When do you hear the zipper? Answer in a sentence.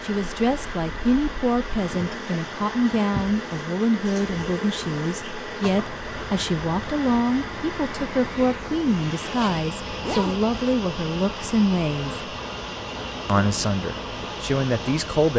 The zipper can be heard from 9.2 to 10.4 s.